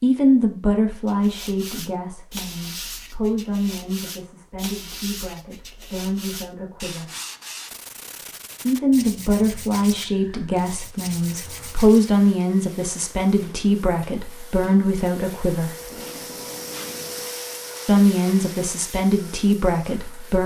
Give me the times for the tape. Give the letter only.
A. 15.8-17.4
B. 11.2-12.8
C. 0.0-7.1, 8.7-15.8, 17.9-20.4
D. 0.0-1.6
A.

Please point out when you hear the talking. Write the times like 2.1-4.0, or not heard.
0.0-7.1, 8.7-15.8, 17.9-20.4.